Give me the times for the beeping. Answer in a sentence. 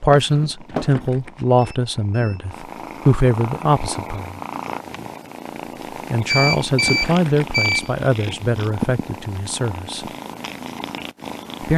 You can hear the beeping from 0.1 to 1.1 s and from 6.2 to 8.0 s.